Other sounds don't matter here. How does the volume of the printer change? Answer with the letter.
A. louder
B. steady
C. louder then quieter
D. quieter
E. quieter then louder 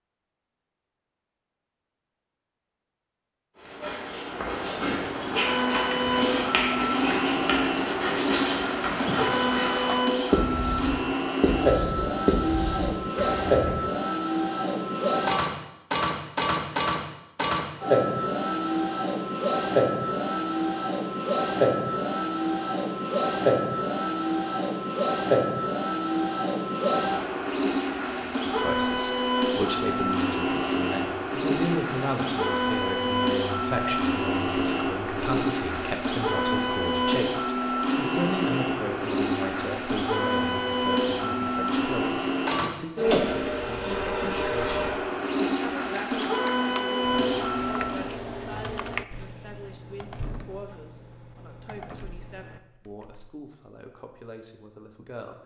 B.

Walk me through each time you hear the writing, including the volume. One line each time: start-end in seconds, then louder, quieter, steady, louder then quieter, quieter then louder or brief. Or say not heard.
3.5-13.8 steady.